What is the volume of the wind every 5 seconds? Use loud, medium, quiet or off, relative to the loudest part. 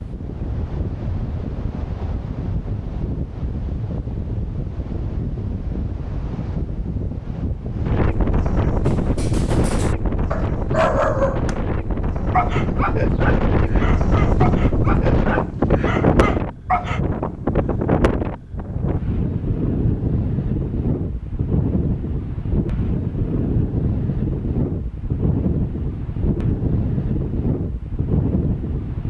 medium, loud, loud, loud, loud, loud.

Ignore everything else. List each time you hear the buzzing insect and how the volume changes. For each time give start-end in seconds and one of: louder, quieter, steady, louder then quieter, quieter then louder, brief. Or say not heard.
not heard.